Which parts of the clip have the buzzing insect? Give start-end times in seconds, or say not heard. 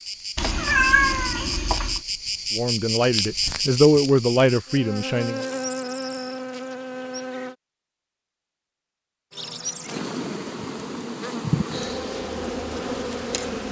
0.0-7.5, 9.3-13.6.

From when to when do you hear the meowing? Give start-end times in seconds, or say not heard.
0.3-2.0.